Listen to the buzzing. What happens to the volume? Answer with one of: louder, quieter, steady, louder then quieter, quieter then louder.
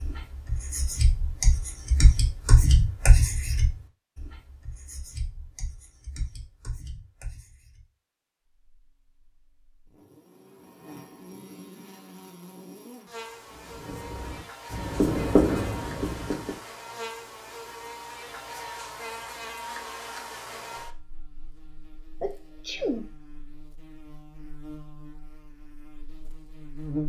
louder then quieter.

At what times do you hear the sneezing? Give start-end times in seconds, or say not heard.
22.2-23.1.